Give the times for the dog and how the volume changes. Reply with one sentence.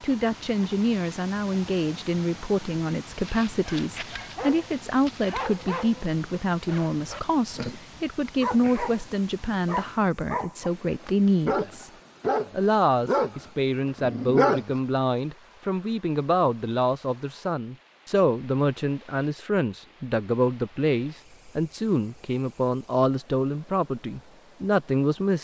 You can hear the dog from 3.2 to 14.8 s, getting louder.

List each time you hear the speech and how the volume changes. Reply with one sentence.
You can hear the speech from 0.0 to 11.9 s, at a steady volume; and from 12.5 to 25.3 s, at a steady volume.